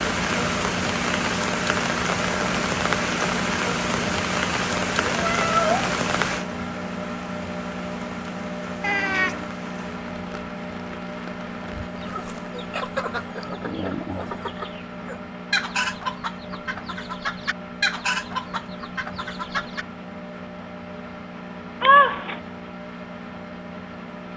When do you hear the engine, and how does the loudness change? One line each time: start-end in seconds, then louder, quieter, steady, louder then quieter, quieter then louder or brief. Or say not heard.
0.0-24.3 quieter.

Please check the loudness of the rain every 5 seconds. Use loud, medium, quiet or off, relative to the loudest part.
loud, medium, quiet, off, off.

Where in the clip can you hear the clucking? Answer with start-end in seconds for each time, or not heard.
11.7-19.9.